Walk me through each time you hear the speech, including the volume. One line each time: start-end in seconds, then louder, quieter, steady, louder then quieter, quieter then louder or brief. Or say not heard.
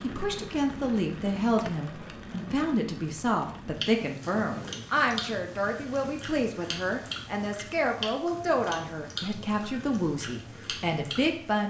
0.0-11.6 steady.